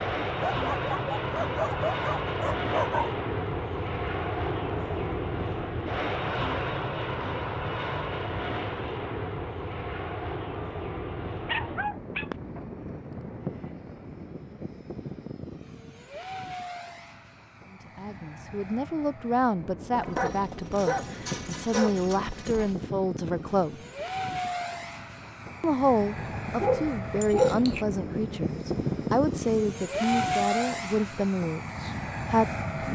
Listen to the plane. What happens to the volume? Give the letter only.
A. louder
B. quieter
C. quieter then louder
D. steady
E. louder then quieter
C.